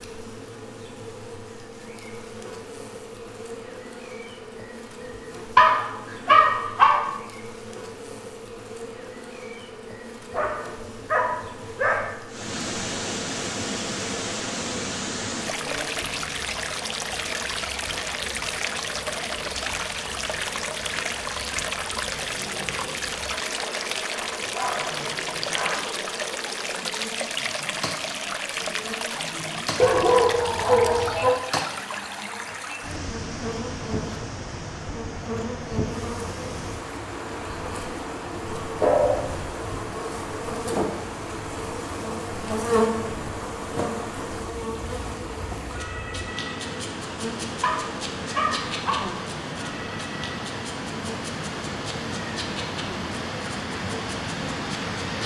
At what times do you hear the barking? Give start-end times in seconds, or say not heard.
5.5-7.0, 10.3-12.2, 24.4-25.9, 29.8-31.4, 38.8-39.9, 47.6-49.1.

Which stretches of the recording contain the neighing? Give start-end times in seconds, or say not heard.
not heard.